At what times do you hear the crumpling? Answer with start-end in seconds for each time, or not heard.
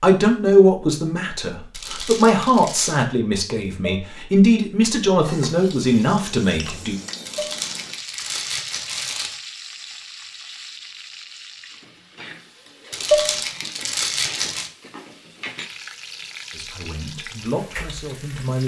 1.7-3.0, 7.2-9.4, 12.9-14.7.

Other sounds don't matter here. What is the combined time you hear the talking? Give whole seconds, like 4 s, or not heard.
9 s.